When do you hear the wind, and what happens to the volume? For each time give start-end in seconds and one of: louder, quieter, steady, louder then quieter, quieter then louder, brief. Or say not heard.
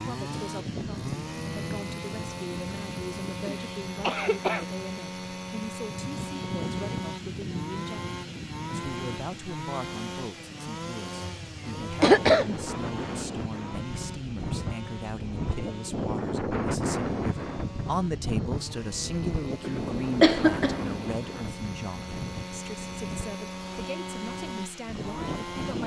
0.0-25.8 louder then quieter.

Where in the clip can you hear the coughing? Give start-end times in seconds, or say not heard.
3.5-4.7, 11.4-12.7, 19.6-20.9.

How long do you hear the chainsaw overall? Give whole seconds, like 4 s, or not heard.
26 s.